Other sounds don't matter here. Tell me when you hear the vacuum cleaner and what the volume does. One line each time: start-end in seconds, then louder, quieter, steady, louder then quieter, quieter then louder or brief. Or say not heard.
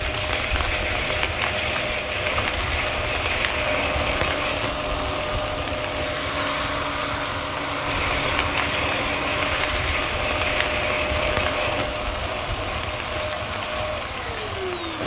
0.0-15.0 steady.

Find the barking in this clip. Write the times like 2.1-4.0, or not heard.
not heard.